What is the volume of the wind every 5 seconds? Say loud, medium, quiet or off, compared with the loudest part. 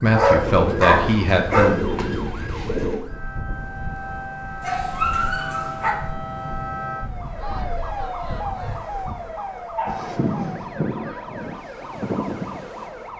medium, medium, loud.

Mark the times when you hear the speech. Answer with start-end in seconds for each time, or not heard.
0.0-1.9.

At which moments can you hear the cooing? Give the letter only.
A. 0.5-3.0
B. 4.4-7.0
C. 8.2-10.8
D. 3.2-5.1
A.